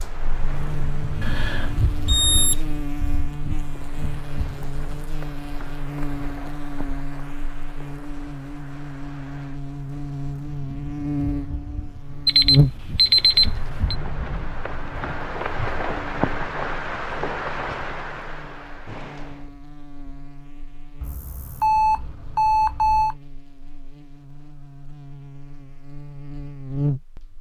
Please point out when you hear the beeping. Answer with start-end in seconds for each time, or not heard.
1.2-2.6, 12.2-13.9, 21.0-23.1.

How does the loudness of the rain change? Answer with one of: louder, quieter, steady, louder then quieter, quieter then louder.
quieter then louder.